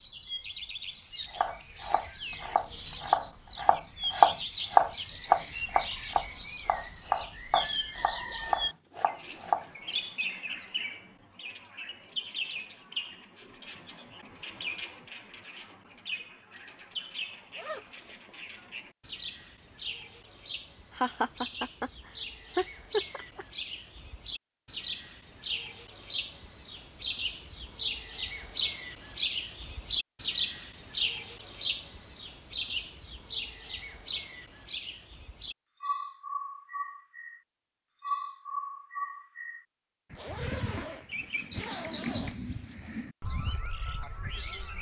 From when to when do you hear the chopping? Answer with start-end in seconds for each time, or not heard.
1.3-9.7.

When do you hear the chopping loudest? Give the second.
4 s.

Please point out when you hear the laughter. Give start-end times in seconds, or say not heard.
20.9-23.4.